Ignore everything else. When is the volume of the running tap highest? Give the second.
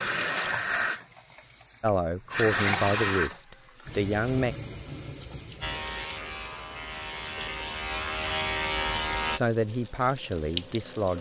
3 s.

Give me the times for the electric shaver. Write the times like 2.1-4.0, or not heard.
5.6-9.4.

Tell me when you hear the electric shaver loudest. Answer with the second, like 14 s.
9 s.